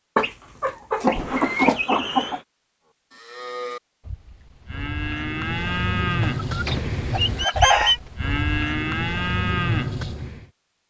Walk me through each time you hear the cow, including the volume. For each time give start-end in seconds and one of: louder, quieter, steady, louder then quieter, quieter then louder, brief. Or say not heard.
3.1-10.4 louder.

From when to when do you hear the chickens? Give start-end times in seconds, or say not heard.
0.1-2.4, 6.2-8.0.